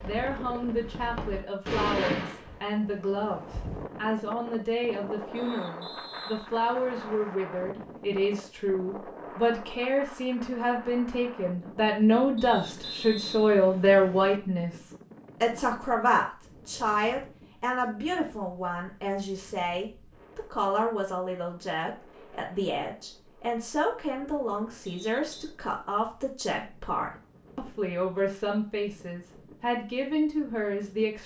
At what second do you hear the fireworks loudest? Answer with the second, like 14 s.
2 s.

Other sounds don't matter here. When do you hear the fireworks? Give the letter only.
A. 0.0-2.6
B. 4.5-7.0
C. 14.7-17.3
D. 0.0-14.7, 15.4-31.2
A.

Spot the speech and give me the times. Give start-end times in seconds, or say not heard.
0.0-14.7, 15.4-31.2.